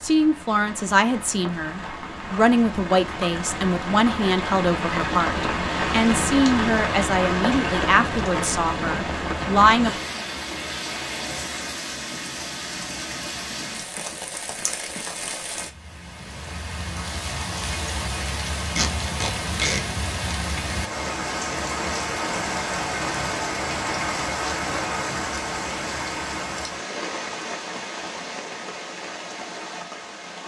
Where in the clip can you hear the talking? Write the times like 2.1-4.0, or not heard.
0.0-9.9.